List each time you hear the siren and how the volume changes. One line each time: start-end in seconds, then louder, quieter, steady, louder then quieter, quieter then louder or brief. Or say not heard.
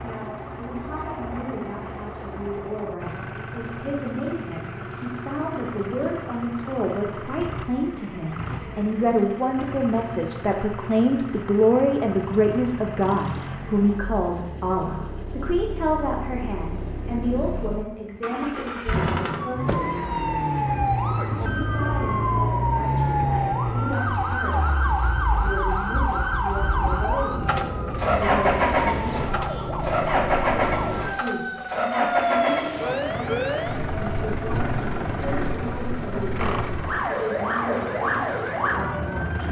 19.2-39.4 steady.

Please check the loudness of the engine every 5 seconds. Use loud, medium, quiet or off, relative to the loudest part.
medium, medium, medium, medium, loud, loud, loud, medium.